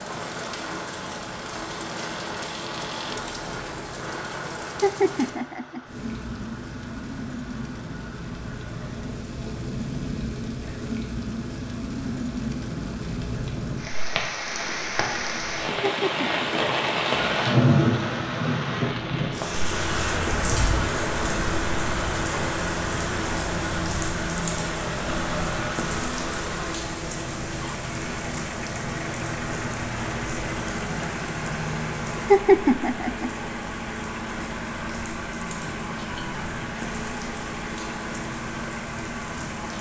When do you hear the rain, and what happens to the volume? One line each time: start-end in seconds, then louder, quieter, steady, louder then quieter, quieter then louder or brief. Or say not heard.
0.0-39.7 louder then quieter.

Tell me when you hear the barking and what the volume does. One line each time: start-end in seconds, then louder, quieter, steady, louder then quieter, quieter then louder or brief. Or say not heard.
not heard.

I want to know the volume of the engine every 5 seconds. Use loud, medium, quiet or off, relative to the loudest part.
medium, quiet, off, loud, loud, loud, loud, loud.